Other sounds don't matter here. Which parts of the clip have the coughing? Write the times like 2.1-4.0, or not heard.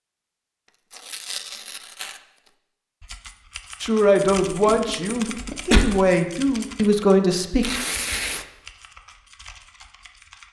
4.7-5.8.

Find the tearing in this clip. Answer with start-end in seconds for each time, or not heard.
0.9-2.2, 7.6-8.4.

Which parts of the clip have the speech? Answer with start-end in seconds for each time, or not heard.
3.8-7.7.